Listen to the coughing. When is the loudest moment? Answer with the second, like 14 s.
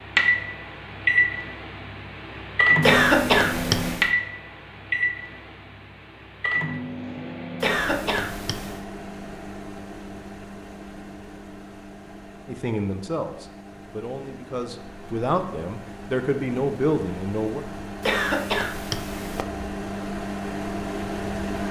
3 s.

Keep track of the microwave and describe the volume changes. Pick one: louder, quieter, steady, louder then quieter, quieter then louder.
quieter then louder.